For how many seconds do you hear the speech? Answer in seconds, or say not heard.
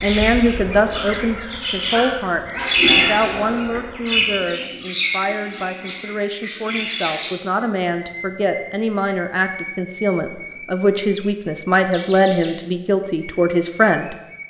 14 s.